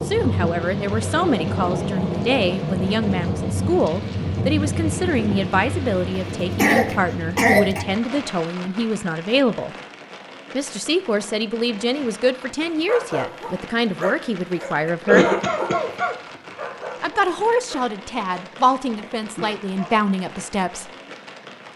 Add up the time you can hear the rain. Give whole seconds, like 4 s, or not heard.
22 s.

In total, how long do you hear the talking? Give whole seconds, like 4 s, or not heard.
18 s.